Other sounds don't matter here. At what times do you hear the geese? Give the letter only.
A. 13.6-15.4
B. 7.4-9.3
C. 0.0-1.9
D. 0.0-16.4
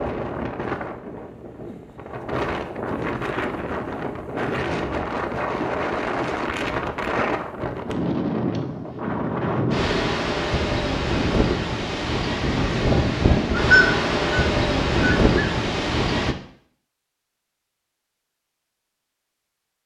A.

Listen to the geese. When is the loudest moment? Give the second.
14 s.